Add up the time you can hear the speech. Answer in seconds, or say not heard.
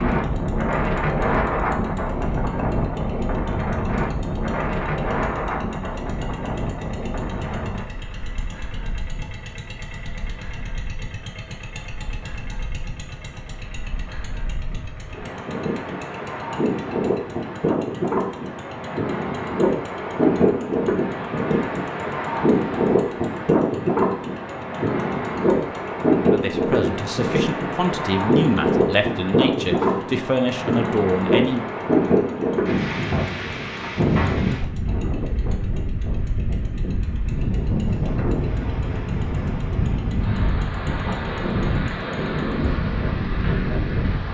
5 s.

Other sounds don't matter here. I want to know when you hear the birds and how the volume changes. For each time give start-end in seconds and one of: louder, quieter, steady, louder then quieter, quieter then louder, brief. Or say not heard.
not heard.